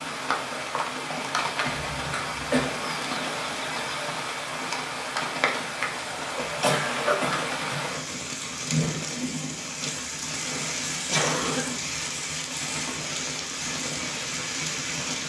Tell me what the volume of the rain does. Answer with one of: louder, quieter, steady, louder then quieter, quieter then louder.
steady.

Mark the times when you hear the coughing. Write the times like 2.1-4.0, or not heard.
1.6-2.7, 6.3-8.0, 11.1-11.8.